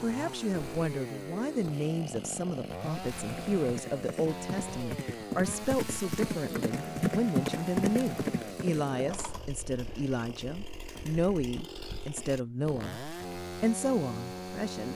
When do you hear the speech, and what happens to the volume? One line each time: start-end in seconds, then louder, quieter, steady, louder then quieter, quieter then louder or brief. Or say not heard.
0.0-14.8 steady.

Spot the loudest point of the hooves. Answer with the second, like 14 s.
7 s.